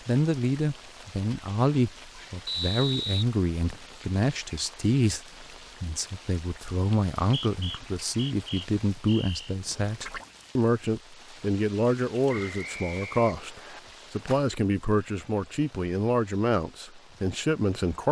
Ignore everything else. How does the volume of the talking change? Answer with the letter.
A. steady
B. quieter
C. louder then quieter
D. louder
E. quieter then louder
A.